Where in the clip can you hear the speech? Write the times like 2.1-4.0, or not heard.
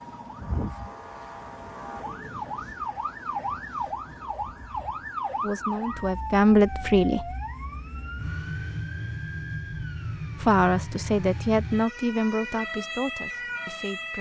5.4-7.2, 10.4-14.1.